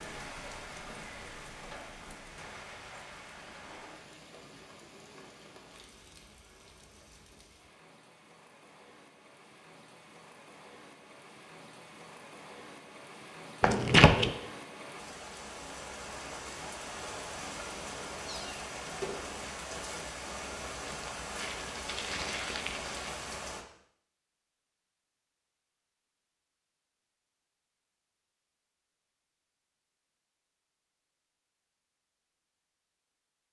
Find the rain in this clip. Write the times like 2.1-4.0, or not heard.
0.0-23.6.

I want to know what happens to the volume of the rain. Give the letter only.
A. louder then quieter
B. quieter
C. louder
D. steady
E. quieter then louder
E.